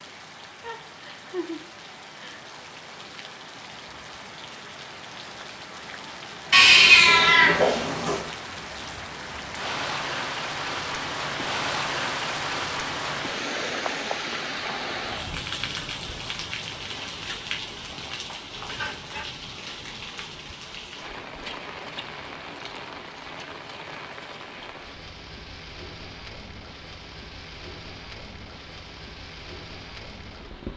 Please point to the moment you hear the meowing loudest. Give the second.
7 s.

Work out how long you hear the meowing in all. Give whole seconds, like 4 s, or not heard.
2 s.